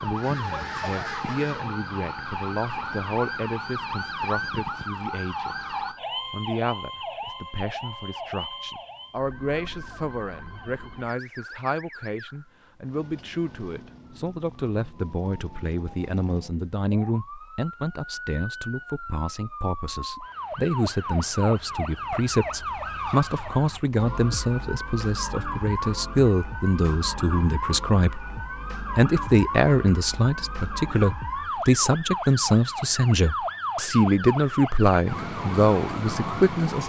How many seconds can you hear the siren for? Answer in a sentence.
The siren can be heard for 37 seconds in total.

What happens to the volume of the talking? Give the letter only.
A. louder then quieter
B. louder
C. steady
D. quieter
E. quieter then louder
B.